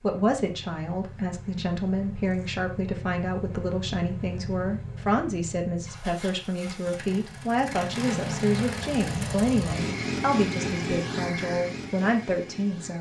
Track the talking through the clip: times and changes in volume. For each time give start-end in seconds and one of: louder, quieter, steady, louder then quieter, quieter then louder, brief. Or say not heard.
0.0-12.9 steady.